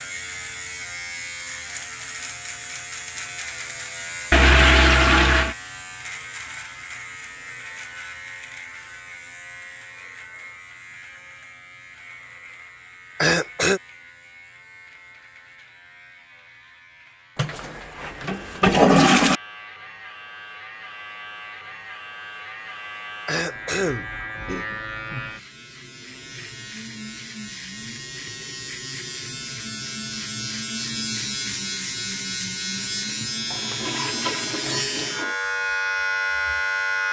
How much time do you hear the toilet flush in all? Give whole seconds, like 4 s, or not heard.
5 s.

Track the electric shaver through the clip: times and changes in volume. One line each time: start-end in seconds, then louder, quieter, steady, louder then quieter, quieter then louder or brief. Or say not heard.
0.0-37.0 quieter then louder.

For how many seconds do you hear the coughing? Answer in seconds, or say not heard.
2 s.